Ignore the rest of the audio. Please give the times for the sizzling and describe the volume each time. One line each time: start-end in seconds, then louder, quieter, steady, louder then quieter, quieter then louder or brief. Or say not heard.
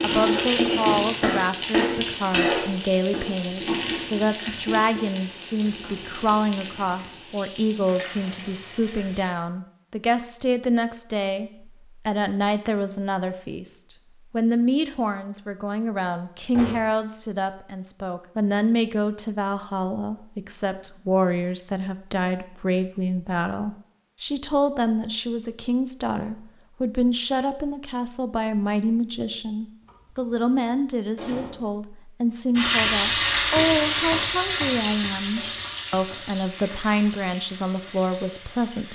0.0-9.3 quieter
32.5-38.9 quieter.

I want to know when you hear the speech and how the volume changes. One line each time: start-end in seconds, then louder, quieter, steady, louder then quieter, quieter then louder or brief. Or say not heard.
0.0-38.9 steady.